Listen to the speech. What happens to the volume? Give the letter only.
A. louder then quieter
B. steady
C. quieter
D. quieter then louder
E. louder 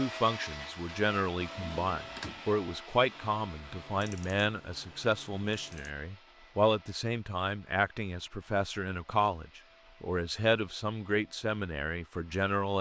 B.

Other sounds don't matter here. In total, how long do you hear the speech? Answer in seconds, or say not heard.
13 s.